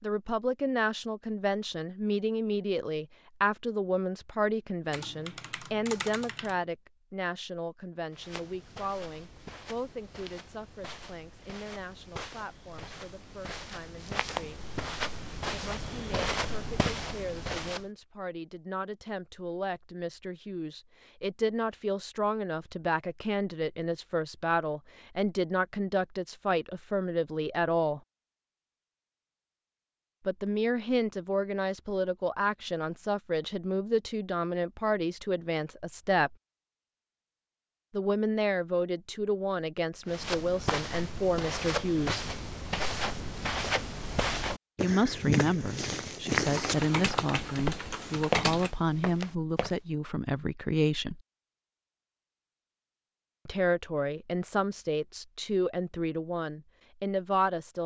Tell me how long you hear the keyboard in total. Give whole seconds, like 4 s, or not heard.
4 s.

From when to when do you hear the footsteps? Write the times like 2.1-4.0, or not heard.
8.1-17.9, 40.0-49.8.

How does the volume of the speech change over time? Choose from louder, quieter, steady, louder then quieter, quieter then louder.
quieter then louder.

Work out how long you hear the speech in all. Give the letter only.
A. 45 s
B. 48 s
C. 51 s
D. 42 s
B.